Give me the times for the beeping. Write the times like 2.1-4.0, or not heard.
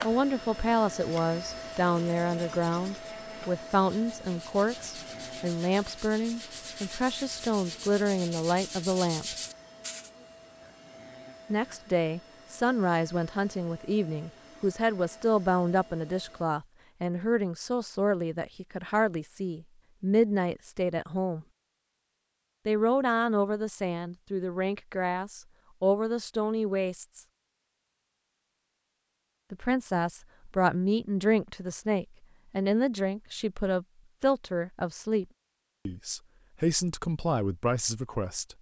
not heard.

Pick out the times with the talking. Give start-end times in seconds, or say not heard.
0.0-9.4, 11.5-21.4, 22.6-27.2, 29.5-35.2, 35.9-38.5.